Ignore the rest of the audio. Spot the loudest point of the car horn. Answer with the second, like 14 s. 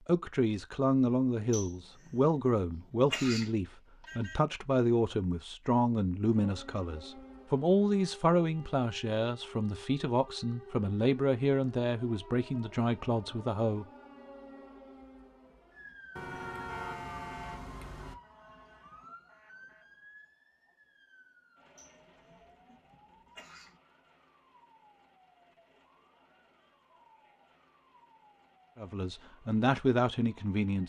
17 s.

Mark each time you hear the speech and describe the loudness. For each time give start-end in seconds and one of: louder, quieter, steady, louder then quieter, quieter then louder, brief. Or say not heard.
0.1-13.8 steady
28.8-30.8 brief.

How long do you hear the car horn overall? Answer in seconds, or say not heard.
3 s.